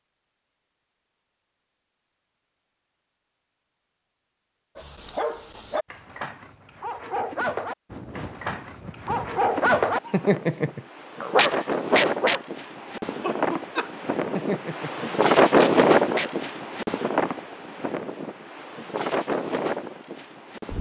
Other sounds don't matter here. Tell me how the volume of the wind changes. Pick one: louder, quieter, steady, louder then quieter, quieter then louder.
louder then quieter.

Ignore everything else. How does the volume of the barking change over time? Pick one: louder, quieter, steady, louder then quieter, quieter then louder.
louder then quieter.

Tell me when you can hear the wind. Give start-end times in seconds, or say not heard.
7.8-20.7.